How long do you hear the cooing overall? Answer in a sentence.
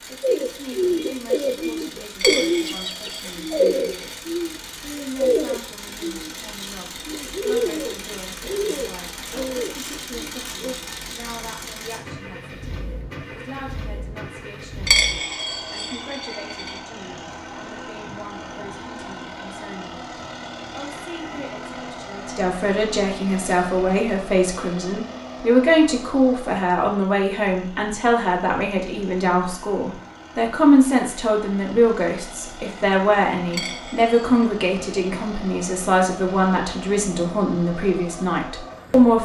The cooing can be heard for 10 seconds in total.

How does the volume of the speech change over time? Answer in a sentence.
The volume of the speech goes up.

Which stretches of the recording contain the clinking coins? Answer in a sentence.
You can hear the clinking coins from 2.2 to 4.2 s, from 14.8 to 16.8 s and from 33.5 to 34.5 s.